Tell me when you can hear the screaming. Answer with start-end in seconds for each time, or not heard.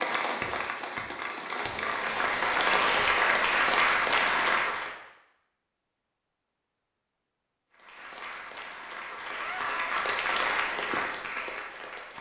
9.3-10.0.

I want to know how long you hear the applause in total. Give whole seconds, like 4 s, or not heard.
9 s.